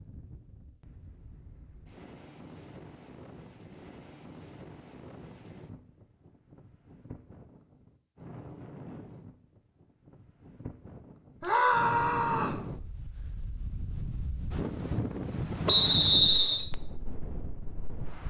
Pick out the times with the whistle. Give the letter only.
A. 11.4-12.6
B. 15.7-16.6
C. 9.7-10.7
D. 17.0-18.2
B.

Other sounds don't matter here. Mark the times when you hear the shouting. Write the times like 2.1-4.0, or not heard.
11.4-12.6.